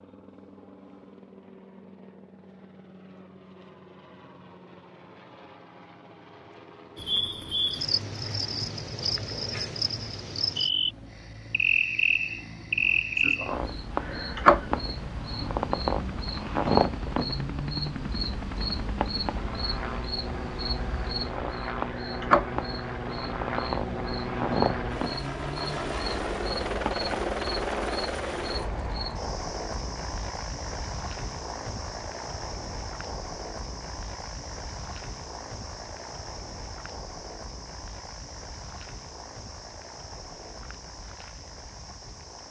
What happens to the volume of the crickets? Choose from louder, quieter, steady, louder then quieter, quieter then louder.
quieter.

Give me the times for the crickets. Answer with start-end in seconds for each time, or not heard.
7.0-42.4.